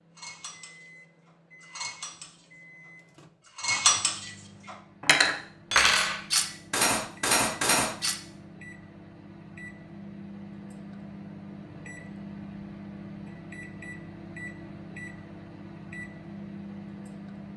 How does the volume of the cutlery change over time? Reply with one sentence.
The loudness of the cutlery goes up.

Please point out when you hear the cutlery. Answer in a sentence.
You can hear the cutlery from 0.1 to 8.2 s.